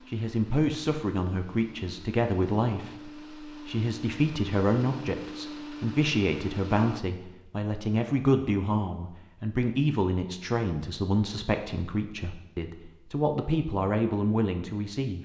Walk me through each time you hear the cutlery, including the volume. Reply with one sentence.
You can't hear the cutlery here.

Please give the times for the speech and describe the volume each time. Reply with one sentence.
You can hear the speech from 0.1 to 15.2 s, at a steady volume.